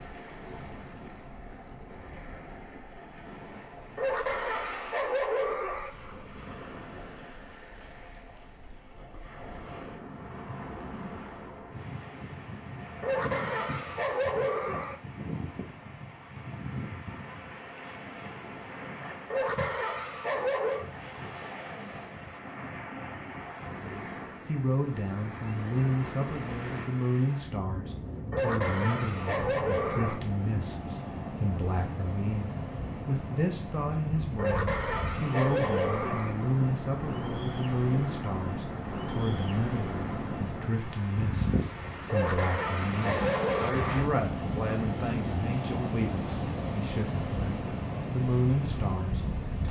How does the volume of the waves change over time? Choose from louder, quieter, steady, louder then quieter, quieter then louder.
louder.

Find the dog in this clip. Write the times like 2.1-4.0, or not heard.
4.0-5.9, 13.0-15.0, 19.3-20.9, 28.3-30.2, 34.4-36.4, 42.0-44.0.